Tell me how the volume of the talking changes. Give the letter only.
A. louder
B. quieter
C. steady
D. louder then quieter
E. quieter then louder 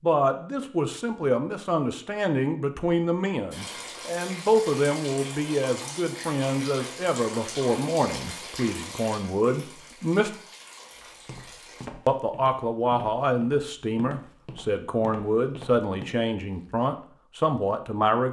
C.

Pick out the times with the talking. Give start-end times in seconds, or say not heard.
0.0-10.3, 12.1-18.2.